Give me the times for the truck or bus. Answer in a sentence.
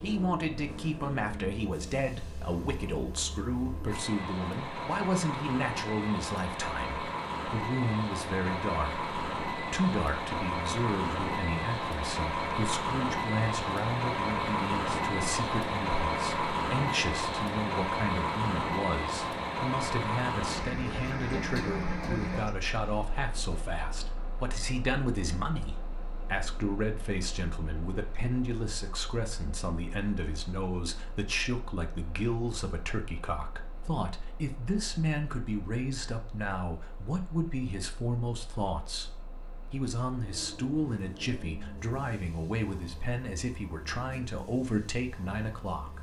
The truck or bus can be heard from 0.0 to 45.9 s.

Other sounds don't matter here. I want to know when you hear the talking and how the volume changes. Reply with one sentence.
You can hear the talking from 0.0 to 45.9 s, at a steady volume.